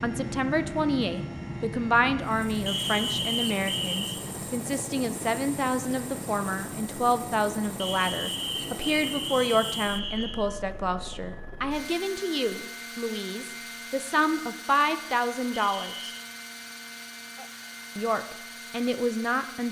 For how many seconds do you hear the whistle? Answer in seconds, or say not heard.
5 s.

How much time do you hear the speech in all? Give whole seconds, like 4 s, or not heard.
18 s.